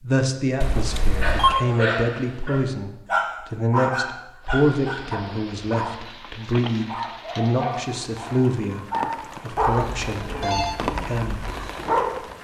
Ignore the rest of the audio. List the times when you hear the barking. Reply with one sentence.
The barking can be heard from 1.2 to 12.3 s.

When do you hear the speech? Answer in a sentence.
The speech can be heard from 0.0 to 11.4 s.